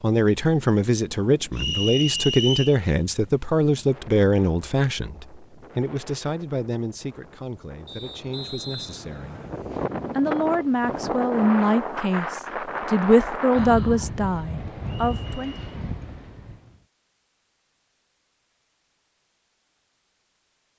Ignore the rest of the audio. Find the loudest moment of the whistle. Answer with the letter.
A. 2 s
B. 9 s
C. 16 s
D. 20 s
A.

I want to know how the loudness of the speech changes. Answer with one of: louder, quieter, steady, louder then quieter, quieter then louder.
quieter then louder.